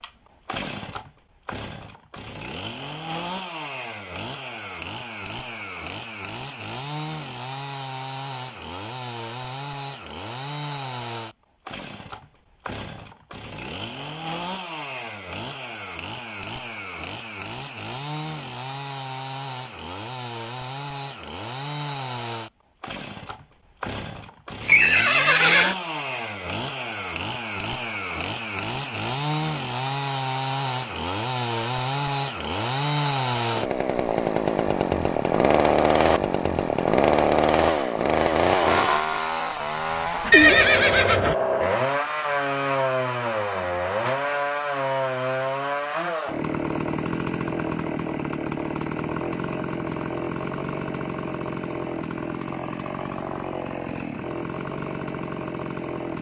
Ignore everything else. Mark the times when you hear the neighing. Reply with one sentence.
The neighing can be heard from 24.6 to 25.8 s and from 40.3 to 41.4 s.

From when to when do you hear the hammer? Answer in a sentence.
The hammer can't be heard in this clip.